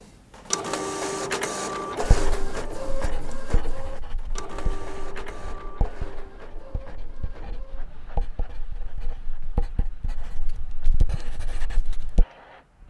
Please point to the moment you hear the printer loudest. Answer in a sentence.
The volume of the printer peaks at 1 second.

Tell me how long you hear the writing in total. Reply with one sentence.
You can hear the writing for 10 seconds altogether.